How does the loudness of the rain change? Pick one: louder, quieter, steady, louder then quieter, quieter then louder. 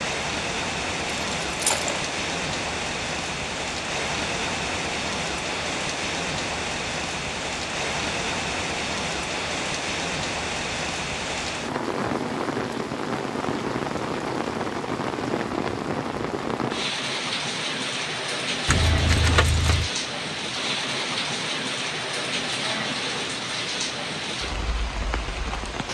steady.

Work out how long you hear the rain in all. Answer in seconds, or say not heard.
26 s.